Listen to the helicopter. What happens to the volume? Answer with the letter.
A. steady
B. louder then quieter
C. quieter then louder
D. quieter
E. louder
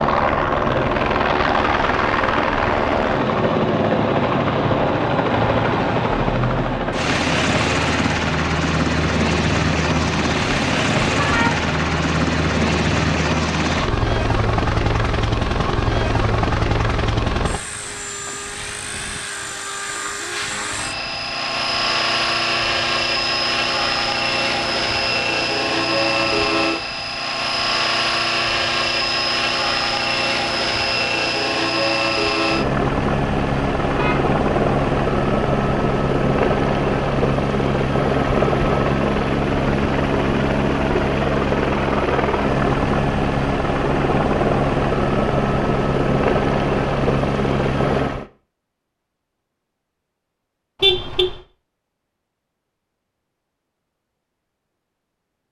A.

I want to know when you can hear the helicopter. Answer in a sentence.
You can hear the helicopter from 0.0 to 48.2 s.